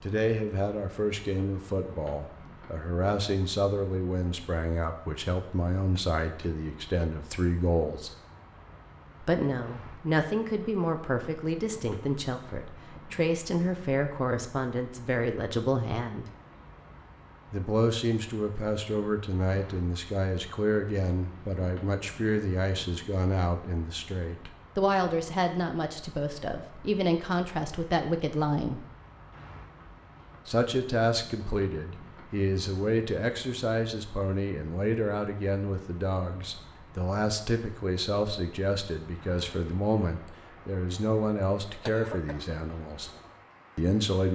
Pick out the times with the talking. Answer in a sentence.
The talking can be heard from 0.0 to 8.1 s, from 9.2 to 16.2 s, from 17.5 to 28.9 s, from 30.4 to 43.1 s and from 43.8 to 44.3 s.